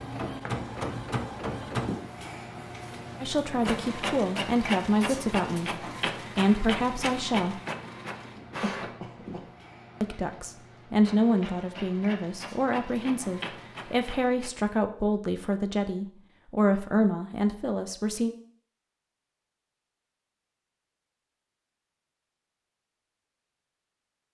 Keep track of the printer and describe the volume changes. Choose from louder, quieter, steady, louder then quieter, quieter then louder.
quieter.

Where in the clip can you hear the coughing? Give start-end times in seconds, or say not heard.
8.6-9.5.